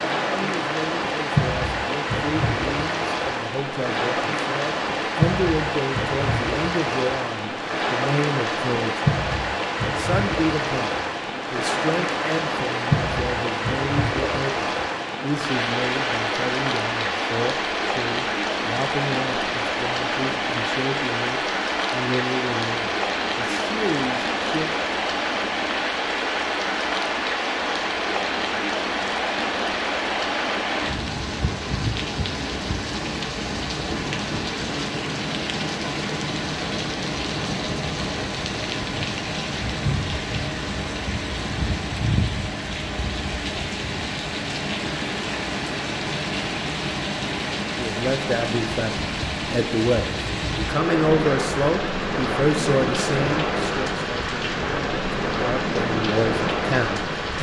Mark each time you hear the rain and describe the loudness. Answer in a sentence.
You can hear the rain from 0.0 to 57.3 s, at a steady volume.